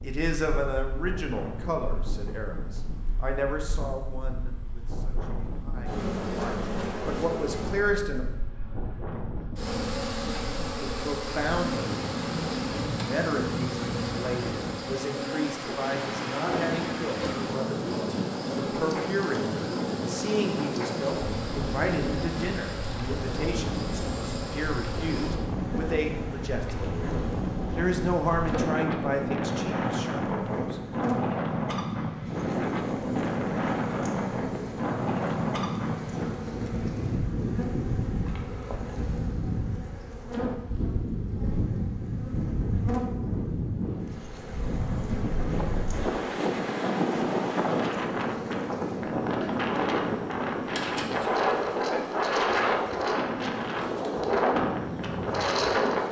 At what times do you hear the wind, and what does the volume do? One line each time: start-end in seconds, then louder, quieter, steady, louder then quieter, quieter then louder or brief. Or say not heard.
0.0-56.0 louder.